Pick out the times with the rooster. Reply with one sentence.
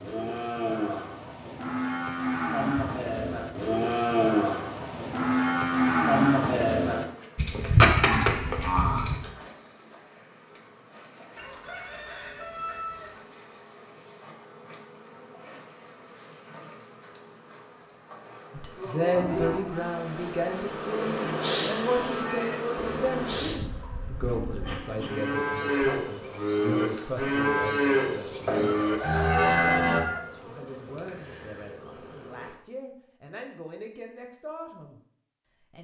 The rooster can be heard from 11.3 to 13.2 s and from 28.4 to 30.2 s.